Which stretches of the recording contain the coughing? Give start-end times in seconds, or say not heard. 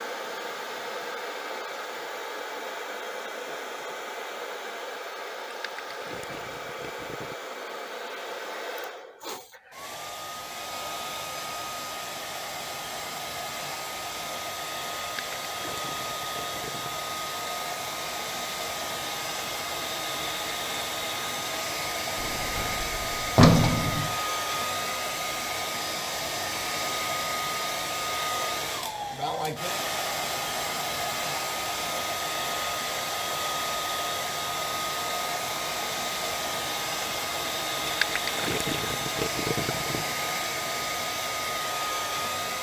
not heard.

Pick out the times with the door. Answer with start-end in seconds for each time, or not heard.
22.2-24.1.